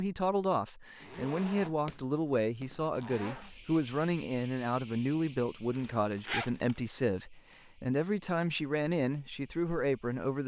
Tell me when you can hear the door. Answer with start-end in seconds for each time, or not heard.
not heard.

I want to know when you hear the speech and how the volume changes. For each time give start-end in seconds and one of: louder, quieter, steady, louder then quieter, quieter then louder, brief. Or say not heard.
0.0-10.4 steady.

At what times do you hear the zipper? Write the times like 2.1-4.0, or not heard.
1.0-3.5, 5.7-6.8.